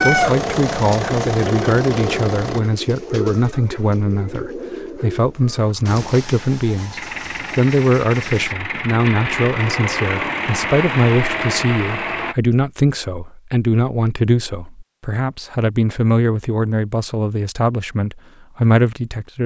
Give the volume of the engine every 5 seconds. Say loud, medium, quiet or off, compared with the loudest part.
loud, loud, loud, off.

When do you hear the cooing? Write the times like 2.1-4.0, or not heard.
0.0-8.6.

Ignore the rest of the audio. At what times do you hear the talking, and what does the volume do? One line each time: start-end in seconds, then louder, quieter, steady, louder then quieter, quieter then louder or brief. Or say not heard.
0.0-19.4 steady.